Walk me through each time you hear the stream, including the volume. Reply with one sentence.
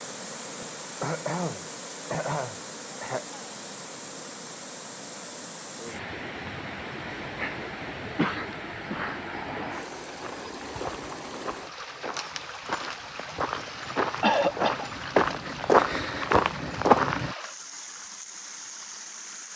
The stream can be heard from 0.0 to 19.5 s, at a steady volume.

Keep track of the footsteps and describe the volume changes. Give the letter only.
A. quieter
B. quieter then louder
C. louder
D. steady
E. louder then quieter
C.